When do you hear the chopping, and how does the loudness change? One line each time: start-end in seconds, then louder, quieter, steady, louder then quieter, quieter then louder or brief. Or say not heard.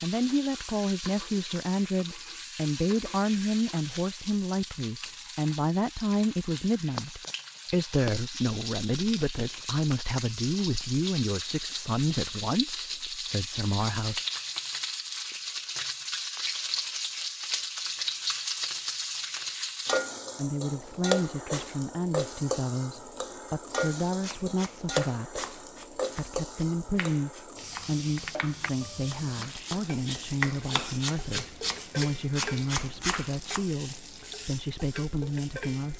24.2-33.6 louder.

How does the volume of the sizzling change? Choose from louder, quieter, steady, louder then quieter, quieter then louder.
louder then quieter.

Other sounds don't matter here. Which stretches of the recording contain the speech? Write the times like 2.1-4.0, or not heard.
0.0-14.2, 20.4-35.9.